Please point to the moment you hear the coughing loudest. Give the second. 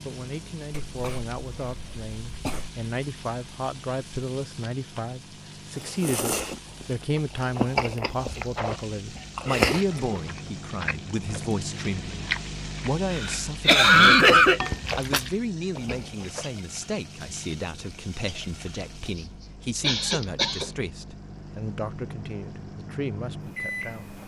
14 s.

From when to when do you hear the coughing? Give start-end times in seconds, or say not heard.
0.7-2.7, 13.1-14.6, 19.8-20.8.